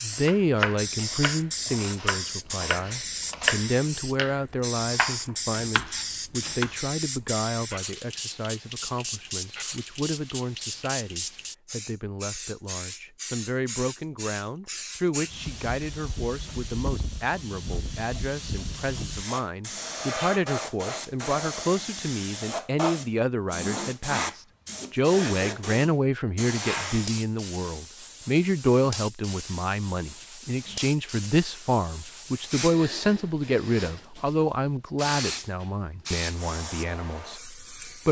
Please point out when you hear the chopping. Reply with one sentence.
You can hear the chopping from 0.1 to 6.8 s.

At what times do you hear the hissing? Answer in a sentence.
The hissing can be heard from 0.0 to 38.0 s.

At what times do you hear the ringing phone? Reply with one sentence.
You can't hear the ringing phone here.